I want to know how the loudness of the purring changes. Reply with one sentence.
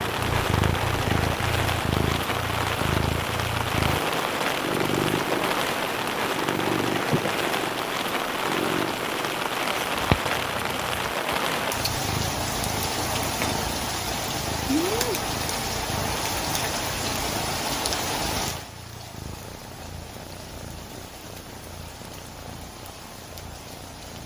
The loudness of the purring goes down.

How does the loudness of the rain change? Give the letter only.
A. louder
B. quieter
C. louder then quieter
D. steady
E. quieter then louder
B.